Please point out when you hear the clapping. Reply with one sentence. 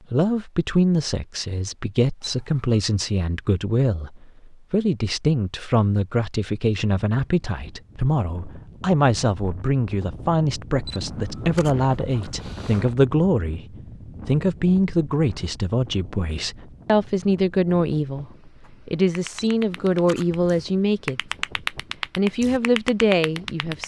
The clapping can be heard from 18.6 to 23.8 s.